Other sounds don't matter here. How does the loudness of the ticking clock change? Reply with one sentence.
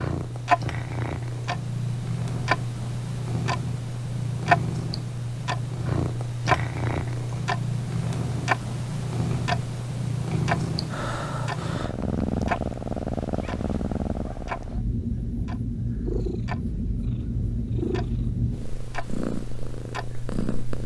The loudness of the ticking clock goes down.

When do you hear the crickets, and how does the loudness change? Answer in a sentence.
The crickets can't be heard in this clip.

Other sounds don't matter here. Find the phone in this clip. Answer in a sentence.
You can't hear the phone here.